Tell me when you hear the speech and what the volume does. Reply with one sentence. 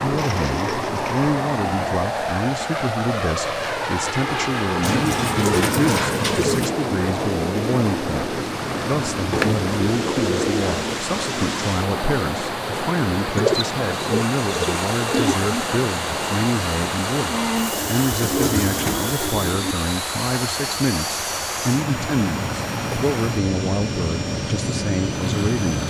You can hear the speech from 0.0 to 25.8 s, at a steady volume.